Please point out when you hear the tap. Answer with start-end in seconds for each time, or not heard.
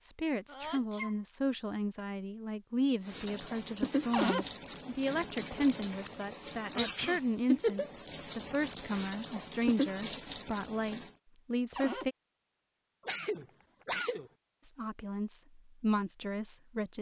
3.0-11.2.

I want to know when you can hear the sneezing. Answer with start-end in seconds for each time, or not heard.
0.5-1.1, 6.5-7.2, 13.1-14.3.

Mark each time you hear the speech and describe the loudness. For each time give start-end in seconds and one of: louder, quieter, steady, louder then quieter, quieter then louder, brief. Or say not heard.
0.0-12.2 steady
14.6-16.9 brief.